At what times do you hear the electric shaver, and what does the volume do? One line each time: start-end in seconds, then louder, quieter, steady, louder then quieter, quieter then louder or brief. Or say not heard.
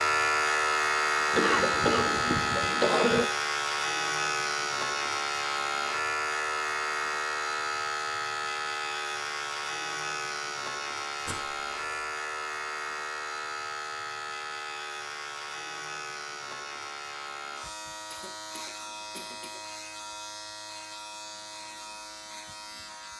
0.0-23.1 quieter.